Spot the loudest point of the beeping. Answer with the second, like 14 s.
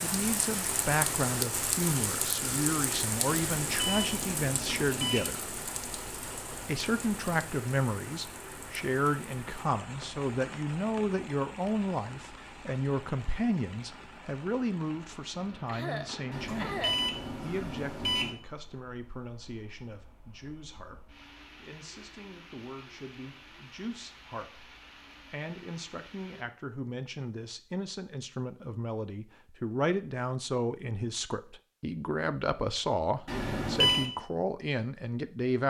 34 s.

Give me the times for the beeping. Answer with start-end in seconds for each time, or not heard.
3.5-5.3, 16.3-18.3, 33.2-34.1.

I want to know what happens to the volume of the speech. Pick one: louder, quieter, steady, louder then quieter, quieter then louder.
quieter then louder.